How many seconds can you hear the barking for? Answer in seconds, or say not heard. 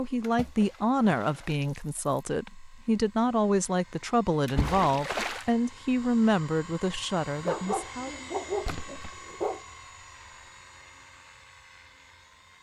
2 s.